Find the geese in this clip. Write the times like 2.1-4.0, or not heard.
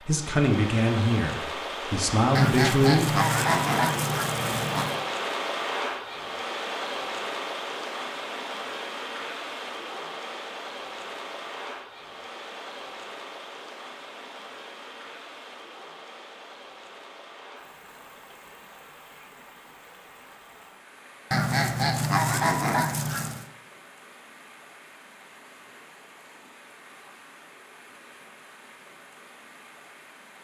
2.4-5.0, 21.3-23.4.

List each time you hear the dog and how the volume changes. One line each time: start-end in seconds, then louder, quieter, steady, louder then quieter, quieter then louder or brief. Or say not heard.
not heard.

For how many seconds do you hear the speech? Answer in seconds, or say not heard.
3 s.